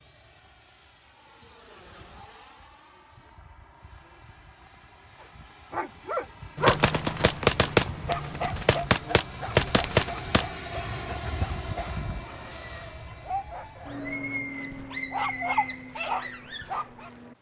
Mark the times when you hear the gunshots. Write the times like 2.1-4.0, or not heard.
6.5-10.4.